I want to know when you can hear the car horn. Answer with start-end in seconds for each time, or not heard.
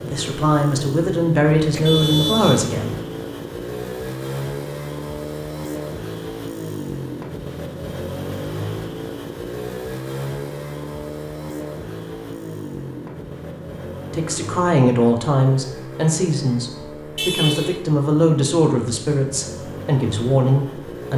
1.7-2.7, 17.1-17.9.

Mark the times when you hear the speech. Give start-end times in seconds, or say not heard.
0.0-3.0, 14.1-21.1.